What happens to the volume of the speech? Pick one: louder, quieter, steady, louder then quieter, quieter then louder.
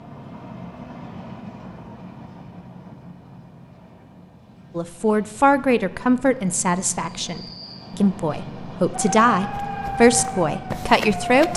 quieter then louder.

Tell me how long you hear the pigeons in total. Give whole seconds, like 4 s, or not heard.
not heard.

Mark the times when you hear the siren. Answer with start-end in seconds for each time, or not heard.
8.9-11.5.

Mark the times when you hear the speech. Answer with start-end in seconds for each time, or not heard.
4.8-11.5.